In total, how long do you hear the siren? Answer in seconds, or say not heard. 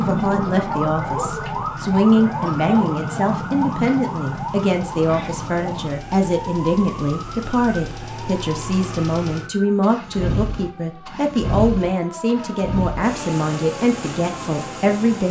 15 s.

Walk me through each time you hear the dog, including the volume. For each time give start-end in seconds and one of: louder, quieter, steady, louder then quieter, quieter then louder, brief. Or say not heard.
not heard.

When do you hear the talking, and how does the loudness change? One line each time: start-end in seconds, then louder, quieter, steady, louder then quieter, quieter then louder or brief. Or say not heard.
0.0-15.2 steady.